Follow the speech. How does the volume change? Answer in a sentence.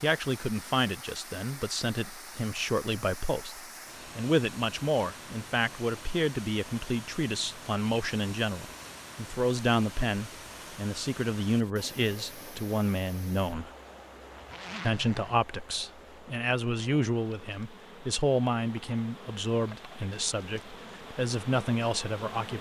The volume of the speech stays about the same.